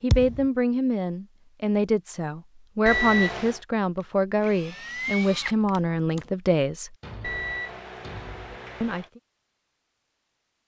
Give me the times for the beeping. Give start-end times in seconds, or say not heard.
2.9-3.6, 7.2-9.1.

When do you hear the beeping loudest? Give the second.
3 s.